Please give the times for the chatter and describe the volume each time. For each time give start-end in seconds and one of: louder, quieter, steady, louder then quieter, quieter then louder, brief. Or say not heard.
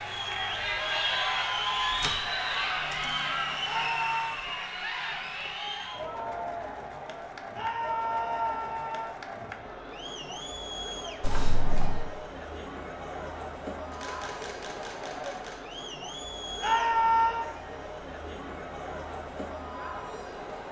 0.0-20.6 quieter.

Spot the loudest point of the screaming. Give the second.
17 s.